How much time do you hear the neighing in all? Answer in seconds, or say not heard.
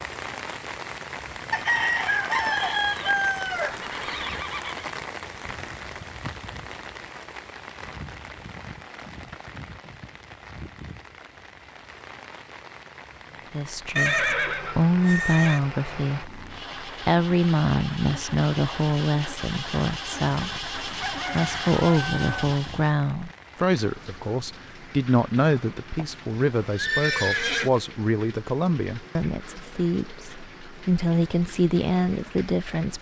5 s.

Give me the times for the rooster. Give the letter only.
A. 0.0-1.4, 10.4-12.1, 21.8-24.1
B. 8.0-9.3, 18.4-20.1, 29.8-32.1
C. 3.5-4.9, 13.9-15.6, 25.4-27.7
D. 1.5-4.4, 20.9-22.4
D.